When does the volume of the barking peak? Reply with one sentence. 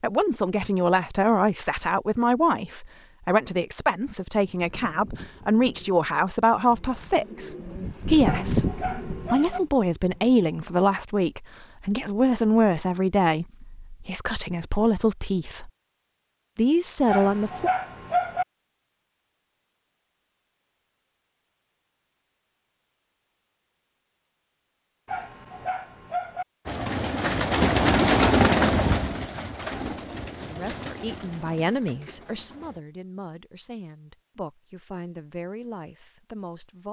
The volume of the barking peaks at 18 seconds.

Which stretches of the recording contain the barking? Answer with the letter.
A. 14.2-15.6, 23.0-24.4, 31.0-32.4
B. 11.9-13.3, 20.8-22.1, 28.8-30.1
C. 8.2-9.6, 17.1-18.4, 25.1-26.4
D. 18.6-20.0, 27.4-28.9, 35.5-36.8
C.